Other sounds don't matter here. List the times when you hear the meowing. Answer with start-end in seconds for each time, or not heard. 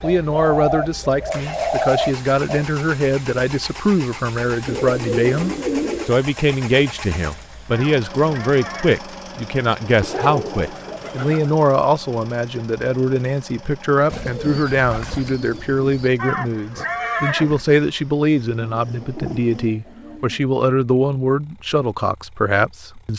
not heard.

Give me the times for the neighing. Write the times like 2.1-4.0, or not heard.
7.7-9.0, 16.1-17.6.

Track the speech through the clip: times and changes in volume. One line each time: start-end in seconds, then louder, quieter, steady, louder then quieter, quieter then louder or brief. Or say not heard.
0.0-23.1 steady.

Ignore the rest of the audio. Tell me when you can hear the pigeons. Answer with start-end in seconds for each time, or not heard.
0.0-2.6, 4.7-6.2, 10.0-11.5, 14.1-16.1, 18.6-20.4.